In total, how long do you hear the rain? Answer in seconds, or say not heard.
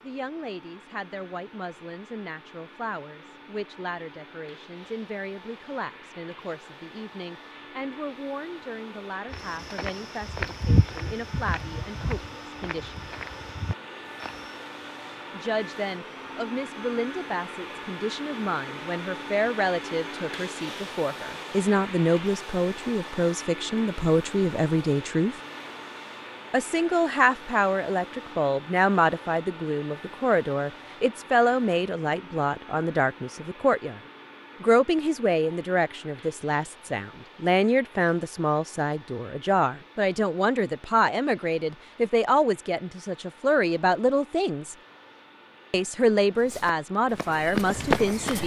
not heard.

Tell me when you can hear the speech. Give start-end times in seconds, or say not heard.
0.0-13.1, 15.3-25.4, 26.5-34.0, 34.6-44.8, 45.7-48.4.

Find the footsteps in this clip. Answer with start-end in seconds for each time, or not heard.
9.3-14.6, 46.4-48.4.